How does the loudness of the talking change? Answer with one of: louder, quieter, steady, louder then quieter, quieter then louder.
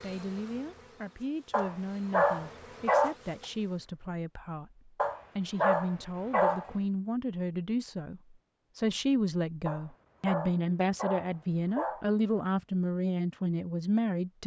louder.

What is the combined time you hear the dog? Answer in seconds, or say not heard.
6 s.